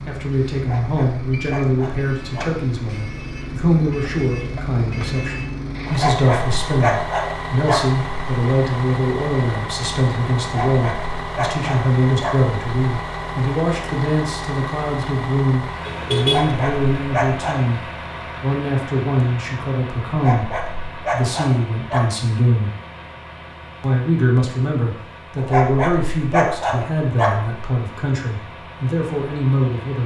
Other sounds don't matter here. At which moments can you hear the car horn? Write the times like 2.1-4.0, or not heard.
15.8-16.6.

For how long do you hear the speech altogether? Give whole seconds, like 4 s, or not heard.
28 s.